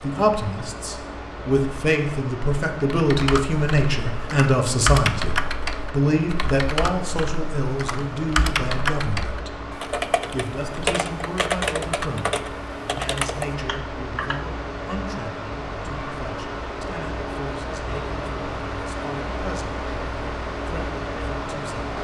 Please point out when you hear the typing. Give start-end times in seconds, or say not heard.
3.0-14.5.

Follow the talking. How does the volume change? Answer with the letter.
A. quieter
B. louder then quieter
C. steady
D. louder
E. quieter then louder
A.